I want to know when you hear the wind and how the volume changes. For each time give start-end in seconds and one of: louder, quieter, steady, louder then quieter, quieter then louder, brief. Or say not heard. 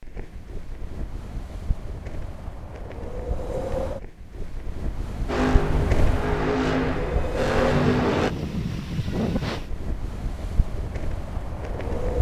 0.0-12.1 louder then quieter.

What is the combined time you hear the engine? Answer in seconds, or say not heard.
3 s.